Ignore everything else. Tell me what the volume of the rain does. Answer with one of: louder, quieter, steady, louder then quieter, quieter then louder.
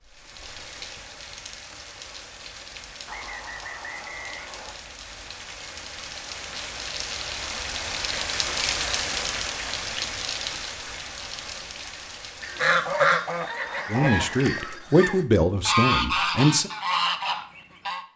louder then quieter.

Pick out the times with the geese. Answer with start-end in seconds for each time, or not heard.
12.4-18.1.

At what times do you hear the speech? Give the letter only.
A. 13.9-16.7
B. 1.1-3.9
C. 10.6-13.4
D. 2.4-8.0
A.